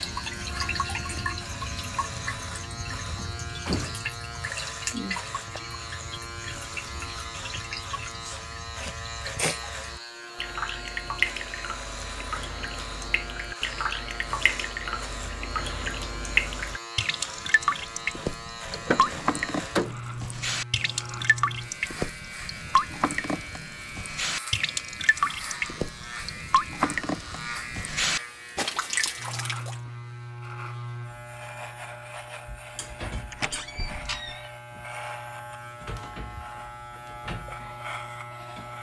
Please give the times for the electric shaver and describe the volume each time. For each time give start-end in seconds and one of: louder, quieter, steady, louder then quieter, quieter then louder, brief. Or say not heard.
0.0-38.7 steady.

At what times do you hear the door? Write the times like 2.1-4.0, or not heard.
3.1-4.1, 18.7-19.9, 33.3-34.5.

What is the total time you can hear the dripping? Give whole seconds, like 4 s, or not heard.
30 s.